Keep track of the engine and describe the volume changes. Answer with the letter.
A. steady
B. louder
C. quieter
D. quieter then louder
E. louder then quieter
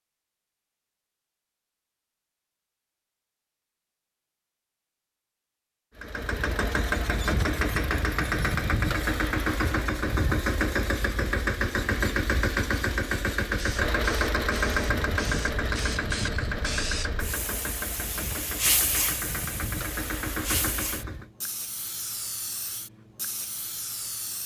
C.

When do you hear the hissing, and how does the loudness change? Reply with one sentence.
You can hear the hissing from 13.6 to 24.4 s, getting louder then quieter.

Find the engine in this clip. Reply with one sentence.
The engine can be heard from 6.0 to 21.3 s.